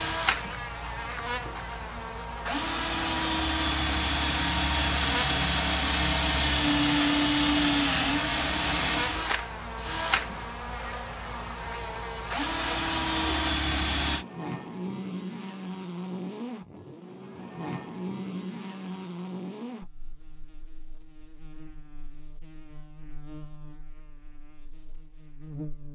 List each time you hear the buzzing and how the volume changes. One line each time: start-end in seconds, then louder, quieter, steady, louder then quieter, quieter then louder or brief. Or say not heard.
0.0-25.9 quieter.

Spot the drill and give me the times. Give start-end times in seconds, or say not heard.
0.0-14.2.